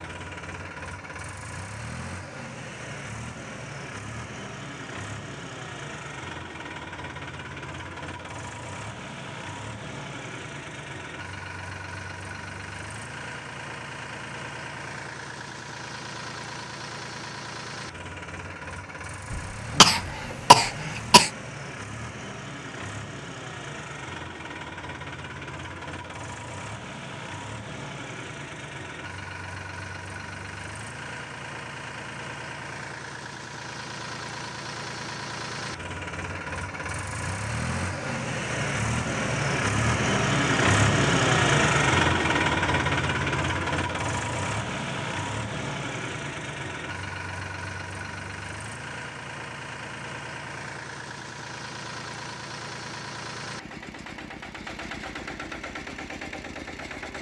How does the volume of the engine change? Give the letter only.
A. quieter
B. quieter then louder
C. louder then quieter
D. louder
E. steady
C.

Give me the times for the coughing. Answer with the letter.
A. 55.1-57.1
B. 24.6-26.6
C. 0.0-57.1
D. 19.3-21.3
D.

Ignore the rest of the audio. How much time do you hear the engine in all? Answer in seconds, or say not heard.
57 s.